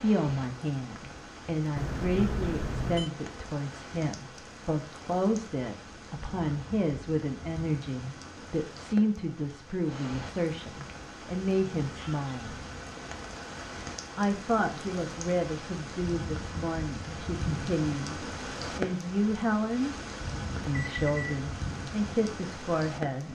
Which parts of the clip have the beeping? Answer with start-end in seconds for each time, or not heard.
1.8-3.1, 20.6-21.4.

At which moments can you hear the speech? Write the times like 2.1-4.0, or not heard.
0.0-12.6, 14.2-19.9, 20.6-23.2.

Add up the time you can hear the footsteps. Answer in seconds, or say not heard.
not heard.